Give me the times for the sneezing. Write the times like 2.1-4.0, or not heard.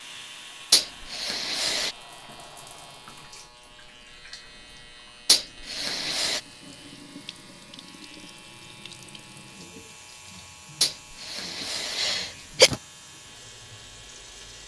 0.7-1.9, 5.2-6.4, 10.8-12.8.